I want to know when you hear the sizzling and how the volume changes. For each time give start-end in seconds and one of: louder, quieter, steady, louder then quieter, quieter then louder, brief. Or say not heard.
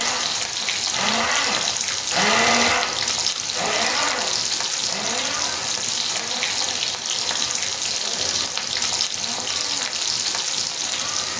0.0-11.3 steady.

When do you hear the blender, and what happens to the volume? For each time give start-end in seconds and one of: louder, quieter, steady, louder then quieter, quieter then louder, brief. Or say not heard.
0.0-11.3 quieter.